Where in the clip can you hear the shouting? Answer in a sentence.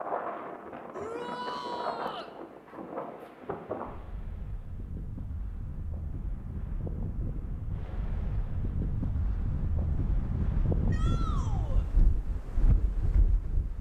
You can hear the shouting from 0.9 to 2.3 s and from 10.9 to 11.8 s.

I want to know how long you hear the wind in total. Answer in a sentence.
You can hear the wind for 14 seconds altogether.